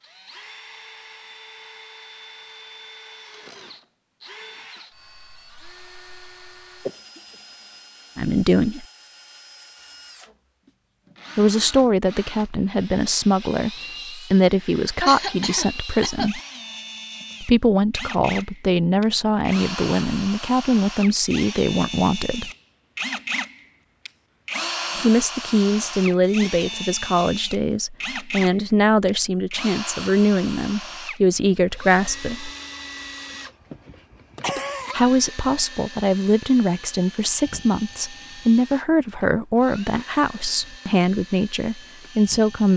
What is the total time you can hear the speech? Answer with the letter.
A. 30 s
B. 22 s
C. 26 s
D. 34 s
C.